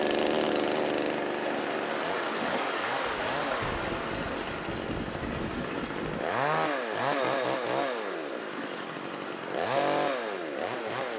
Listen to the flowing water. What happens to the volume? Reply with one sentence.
The volume of the flowing water goes down.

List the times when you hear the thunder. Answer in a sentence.
The thunder can be heard from 3.0 to 6.2 s.